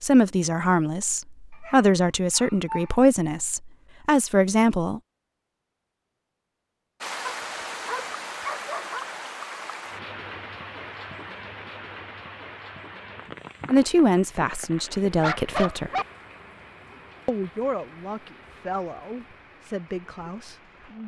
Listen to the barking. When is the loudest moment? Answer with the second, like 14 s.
15 s.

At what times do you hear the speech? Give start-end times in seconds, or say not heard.
0.0-5.0, 13.7-15.9, 17.2-21.0.